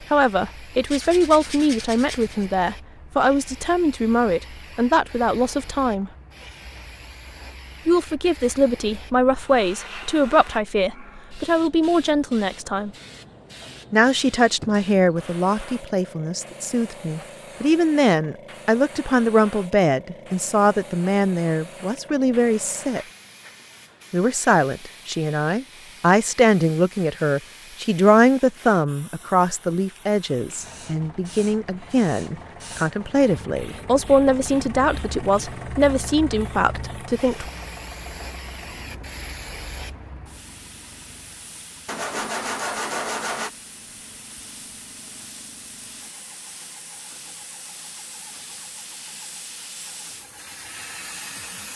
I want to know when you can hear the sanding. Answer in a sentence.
You can hear the sanding from 0.8 to 2.5 s and from 41.9 to 43.5 s.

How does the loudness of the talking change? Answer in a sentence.
The loudness of the talking stays about the same.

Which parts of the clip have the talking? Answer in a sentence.
You can hear the talking from 0.1 to 6.1 s, from 7.8 to 12.9 s, from 13.9 to 23.1 s and from 24.1 to 37.5 s.